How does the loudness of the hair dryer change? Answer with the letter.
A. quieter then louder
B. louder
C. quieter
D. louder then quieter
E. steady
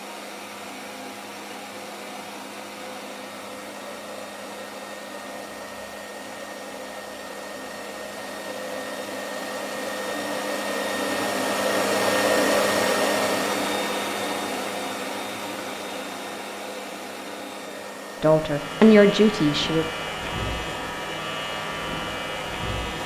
D.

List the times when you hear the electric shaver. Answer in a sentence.
The electric shaver can be heard from 18.4 to 23.0 s.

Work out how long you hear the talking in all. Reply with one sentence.
The talking can be heard for 2 seconds in total.